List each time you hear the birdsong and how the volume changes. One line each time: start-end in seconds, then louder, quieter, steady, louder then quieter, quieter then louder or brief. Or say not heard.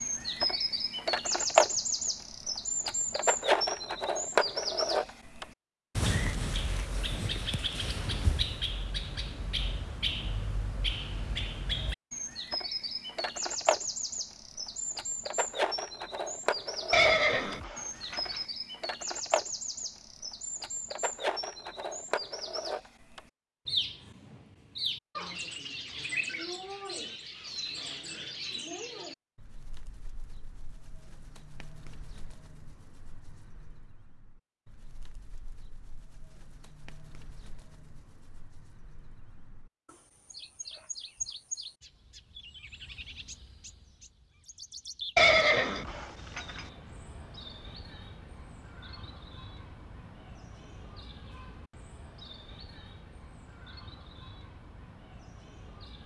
0.0-56.0 quieter.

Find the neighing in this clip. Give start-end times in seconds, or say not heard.
16.9-18.4, 45.1-46.6.